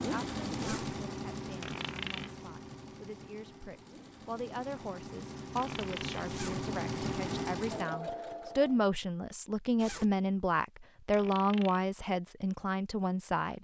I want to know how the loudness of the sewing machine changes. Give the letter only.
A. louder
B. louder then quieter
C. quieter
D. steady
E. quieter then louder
E.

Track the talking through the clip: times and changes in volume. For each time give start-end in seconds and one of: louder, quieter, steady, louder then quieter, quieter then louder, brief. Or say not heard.
0.0-13.5 louder.